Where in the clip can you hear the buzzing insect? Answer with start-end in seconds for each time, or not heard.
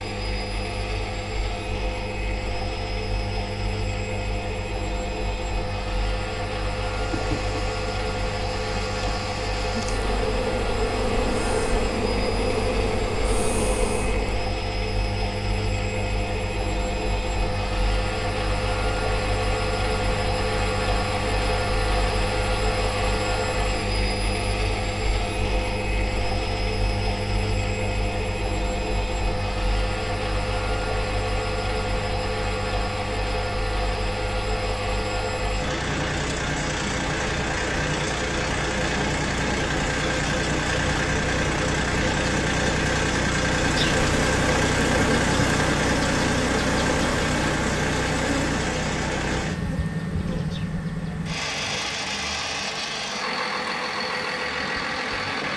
7.0-14.4, 43.6-55.5.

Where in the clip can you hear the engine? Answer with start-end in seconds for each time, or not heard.
0.0-55.5.